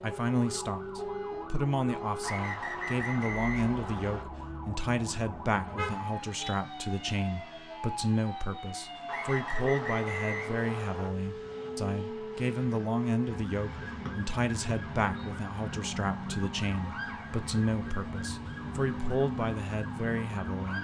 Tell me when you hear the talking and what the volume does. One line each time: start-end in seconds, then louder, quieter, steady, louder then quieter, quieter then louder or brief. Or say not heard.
0.0-20.7 steady.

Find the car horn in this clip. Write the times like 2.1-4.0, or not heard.
5.7-6.5.